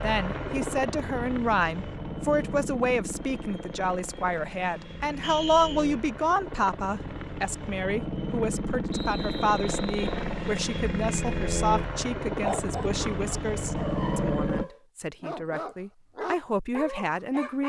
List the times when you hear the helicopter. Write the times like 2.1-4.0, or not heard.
0.0-14.7.